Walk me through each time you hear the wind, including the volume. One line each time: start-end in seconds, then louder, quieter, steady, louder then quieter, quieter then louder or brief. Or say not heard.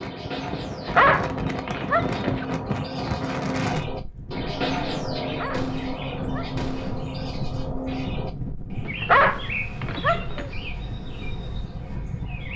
0.0-12.5 quieter.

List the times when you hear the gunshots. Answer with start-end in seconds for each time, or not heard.
5.5-7.2.